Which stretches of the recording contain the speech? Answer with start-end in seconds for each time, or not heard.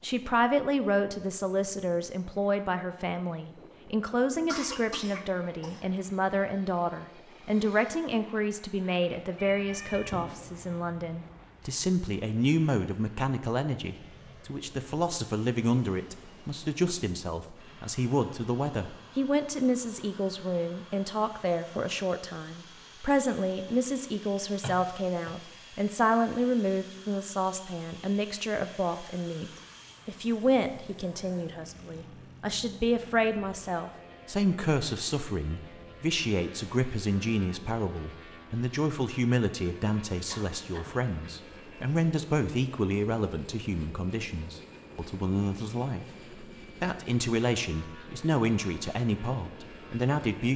0.0-46.0, 46.8-50.5.